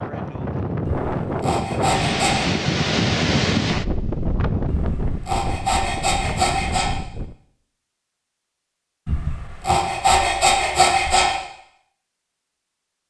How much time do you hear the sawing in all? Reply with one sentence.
The sawing can be heard for 6 seconds in total.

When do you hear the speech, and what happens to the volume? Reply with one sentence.
You can't hear the speech here.